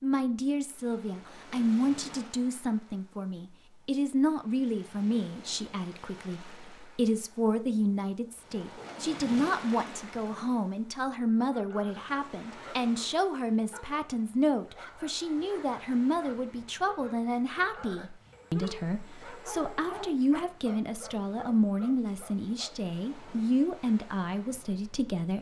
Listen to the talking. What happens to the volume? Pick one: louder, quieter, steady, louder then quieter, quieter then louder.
steady.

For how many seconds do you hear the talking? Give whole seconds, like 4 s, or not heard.
25 s.